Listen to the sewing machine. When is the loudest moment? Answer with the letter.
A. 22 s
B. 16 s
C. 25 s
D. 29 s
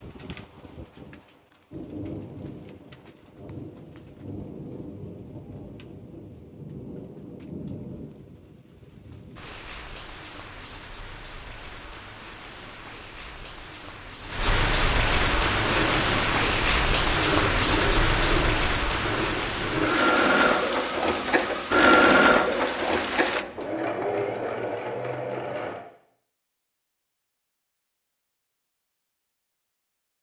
A.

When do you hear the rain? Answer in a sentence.
You can hear the rain from 0.0 to 23.4 s.